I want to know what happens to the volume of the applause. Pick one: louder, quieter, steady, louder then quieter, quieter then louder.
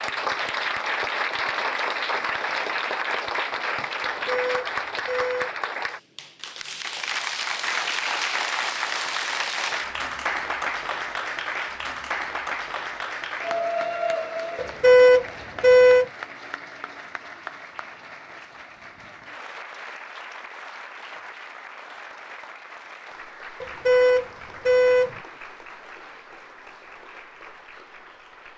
quieter.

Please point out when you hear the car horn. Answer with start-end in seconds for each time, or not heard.
4.2-5.5, 14.6-16.1, 23.6-25.1.